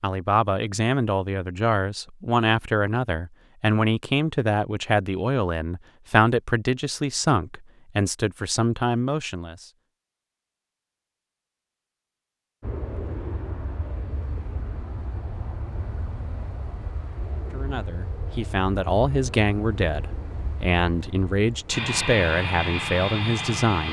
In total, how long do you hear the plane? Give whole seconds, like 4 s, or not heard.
11 s.